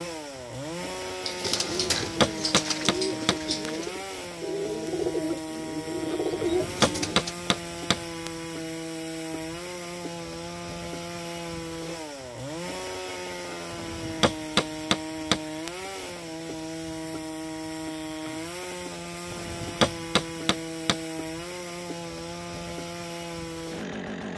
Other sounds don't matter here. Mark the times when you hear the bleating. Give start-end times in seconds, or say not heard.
not heard.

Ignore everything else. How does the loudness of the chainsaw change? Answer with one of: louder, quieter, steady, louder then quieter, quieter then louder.
steady.